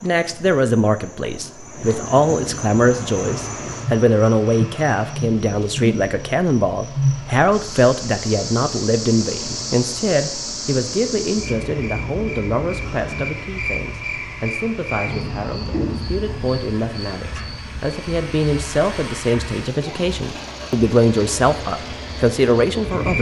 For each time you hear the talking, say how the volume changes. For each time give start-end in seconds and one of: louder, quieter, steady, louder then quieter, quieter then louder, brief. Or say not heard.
0.0-23.1 quieter then louder.